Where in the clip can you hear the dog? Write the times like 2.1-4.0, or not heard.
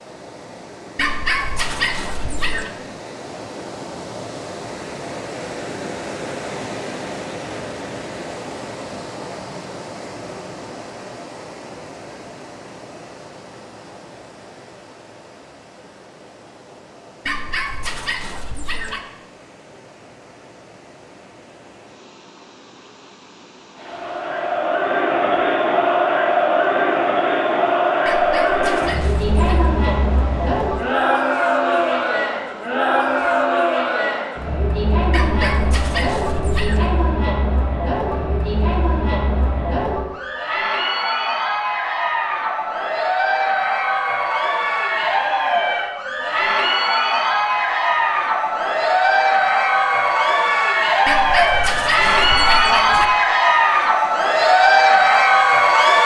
0.9-2.7, 17.2-19.0, 28.1-29.7, 35.1-36.9, 51.0-53.0.